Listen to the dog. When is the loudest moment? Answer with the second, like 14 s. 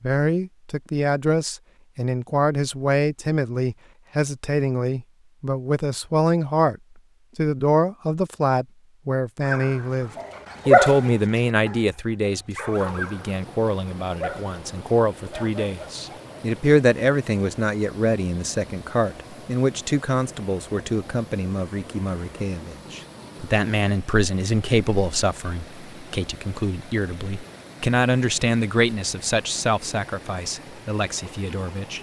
11 s.